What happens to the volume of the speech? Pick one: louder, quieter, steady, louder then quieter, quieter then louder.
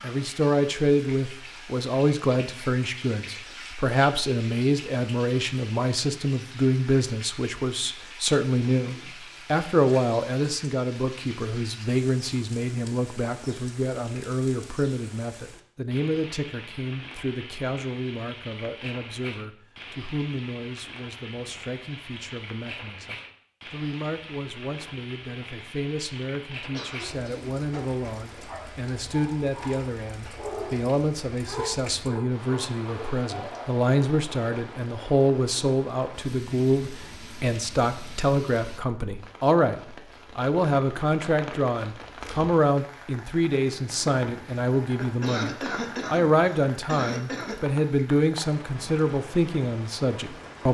quieter then louder.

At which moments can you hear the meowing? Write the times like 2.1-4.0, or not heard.
not heard.